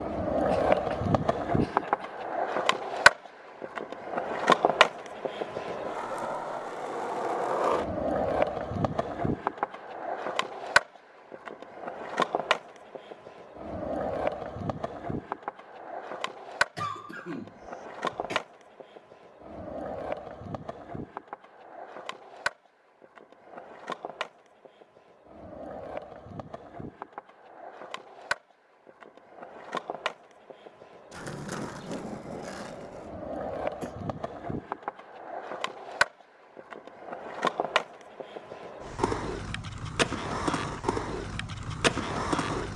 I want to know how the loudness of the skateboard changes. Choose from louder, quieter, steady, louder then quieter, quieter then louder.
quieter then louder.